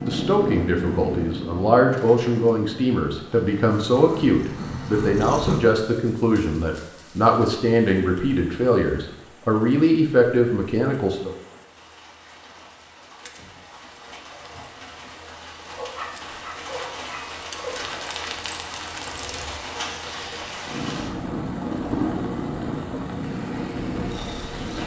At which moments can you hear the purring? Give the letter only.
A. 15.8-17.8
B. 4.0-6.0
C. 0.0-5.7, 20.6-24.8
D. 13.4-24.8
C.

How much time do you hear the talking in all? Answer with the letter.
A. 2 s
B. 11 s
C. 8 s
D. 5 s
B.